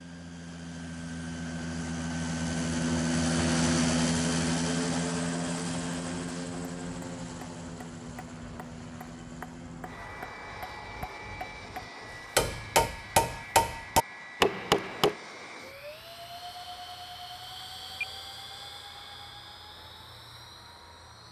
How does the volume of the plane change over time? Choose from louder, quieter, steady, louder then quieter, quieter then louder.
quieter.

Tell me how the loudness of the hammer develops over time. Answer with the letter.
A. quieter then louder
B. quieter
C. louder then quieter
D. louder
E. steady
D.